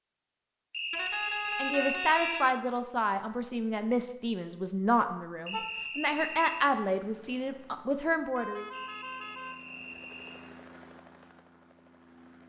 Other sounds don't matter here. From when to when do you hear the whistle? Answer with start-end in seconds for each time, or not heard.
0.7-2.2, 5.5-6.8, 8.7-10.3.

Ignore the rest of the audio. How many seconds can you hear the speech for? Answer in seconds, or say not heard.
7 s.